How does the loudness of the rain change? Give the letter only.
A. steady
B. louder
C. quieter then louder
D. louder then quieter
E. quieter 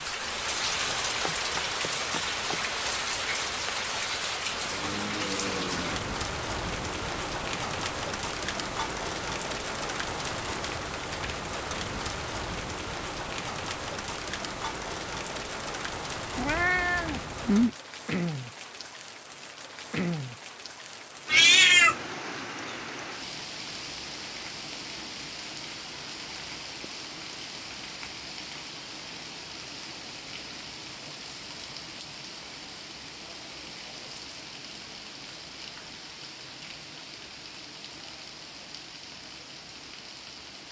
E.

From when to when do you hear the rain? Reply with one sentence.
You can hear the rain from 0.0 to 40.6 s.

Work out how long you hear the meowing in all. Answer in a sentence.
The meowing can be heard for 2 seconds in total.